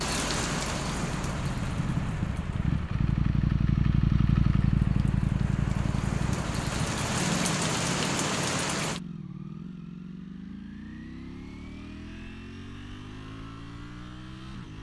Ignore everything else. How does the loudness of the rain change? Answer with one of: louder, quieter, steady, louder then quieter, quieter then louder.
quieter then louder.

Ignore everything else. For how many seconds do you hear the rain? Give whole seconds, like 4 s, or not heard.
9 s.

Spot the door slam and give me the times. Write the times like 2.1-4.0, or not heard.
not heard.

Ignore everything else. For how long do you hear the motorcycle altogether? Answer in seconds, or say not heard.
15 s.